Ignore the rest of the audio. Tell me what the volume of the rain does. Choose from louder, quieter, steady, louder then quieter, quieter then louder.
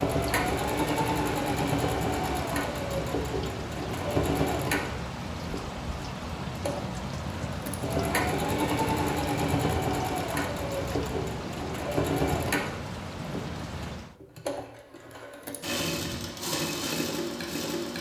steady.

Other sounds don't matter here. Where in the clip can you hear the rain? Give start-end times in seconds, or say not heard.
0.0-14.2.